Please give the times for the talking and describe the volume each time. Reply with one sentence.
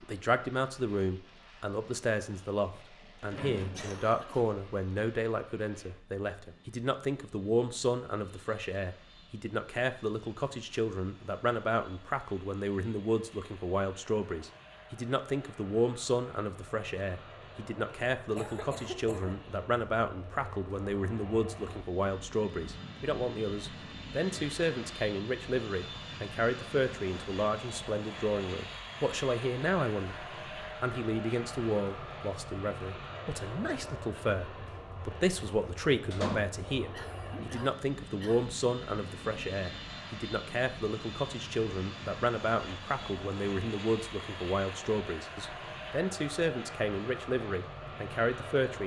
You can hear the talking from 0.0 to 48.8 s, at a steady volume.